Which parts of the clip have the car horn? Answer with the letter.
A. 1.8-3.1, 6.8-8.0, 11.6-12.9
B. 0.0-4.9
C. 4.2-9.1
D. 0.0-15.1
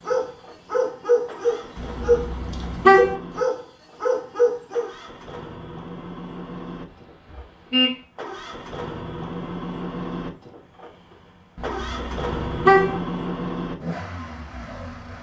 A.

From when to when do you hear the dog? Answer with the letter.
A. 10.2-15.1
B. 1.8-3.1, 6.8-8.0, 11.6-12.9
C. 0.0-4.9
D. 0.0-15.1
C.